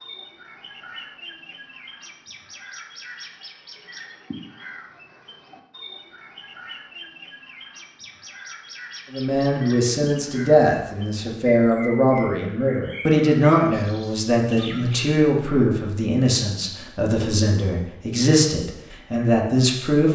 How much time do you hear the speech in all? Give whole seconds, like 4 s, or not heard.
11 s.